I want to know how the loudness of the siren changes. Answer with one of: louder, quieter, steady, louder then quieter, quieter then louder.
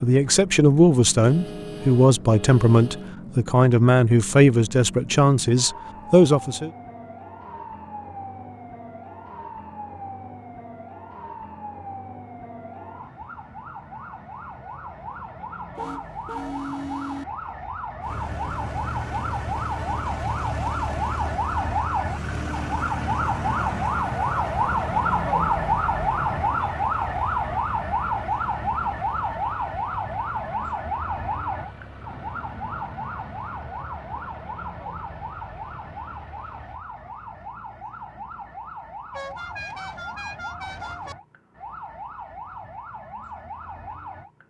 louder then quieter.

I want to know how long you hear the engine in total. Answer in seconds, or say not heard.
19 s.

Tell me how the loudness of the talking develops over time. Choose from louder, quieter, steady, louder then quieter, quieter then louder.
steady.